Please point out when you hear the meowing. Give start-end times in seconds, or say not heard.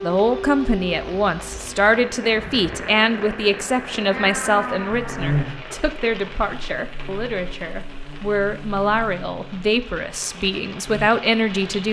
4.1-5.3.